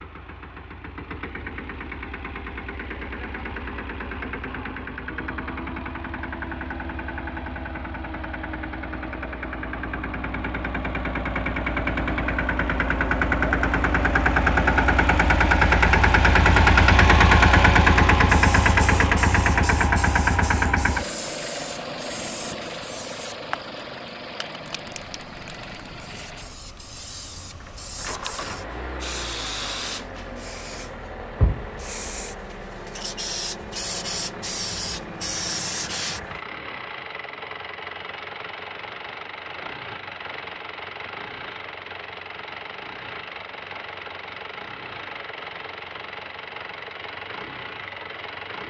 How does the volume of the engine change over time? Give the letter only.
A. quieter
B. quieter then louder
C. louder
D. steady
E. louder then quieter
E.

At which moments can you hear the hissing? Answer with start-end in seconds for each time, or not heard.
18.2-36.2.